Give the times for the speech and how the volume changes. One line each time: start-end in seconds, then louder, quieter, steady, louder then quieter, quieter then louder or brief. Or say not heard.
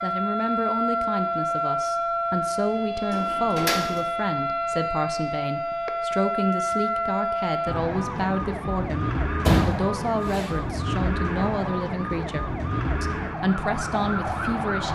0.0-14.9 steady.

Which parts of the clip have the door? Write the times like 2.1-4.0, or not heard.
2.9-4.0, 9.4-10.5.